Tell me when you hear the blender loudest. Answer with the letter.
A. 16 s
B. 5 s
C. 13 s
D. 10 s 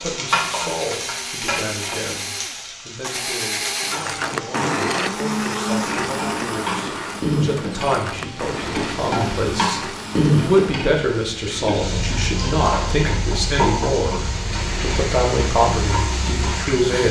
B.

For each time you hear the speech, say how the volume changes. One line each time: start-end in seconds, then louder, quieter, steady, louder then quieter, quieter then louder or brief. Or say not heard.
0.0-17.0 louder.